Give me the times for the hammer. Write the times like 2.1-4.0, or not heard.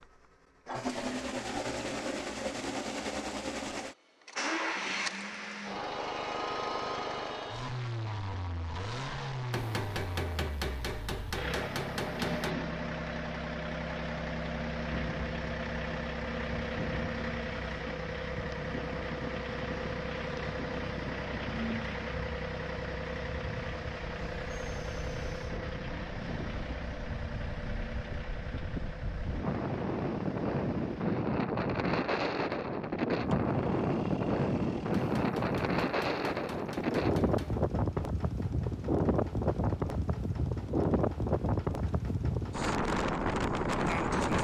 9.5-12.6, 35.0-37.6.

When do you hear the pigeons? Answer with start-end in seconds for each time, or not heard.
not heard.